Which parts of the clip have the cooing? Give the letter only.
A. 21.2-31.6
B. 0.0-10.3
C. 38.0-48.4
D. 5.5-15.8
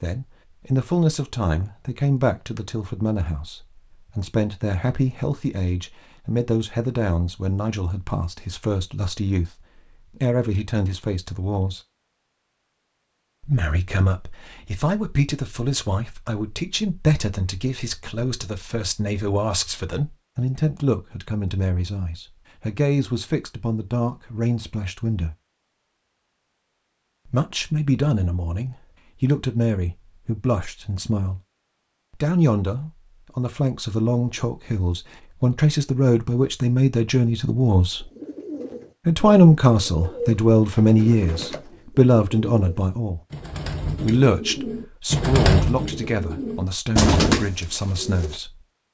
C.